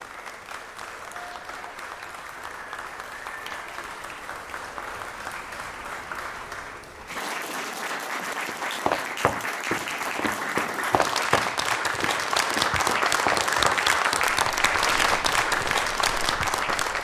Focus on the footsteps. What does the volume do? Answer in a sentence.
The loudness of the footsteps goes down.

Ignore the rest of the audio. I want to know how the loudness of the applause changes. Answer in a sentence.
The loudness of the applause goes up.